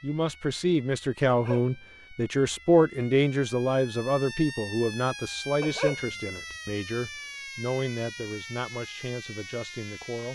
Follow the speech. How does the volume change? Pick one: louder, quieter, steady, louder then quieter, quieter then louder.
quieter.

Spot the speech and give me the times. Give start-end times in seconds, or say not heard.
0.0-10.3.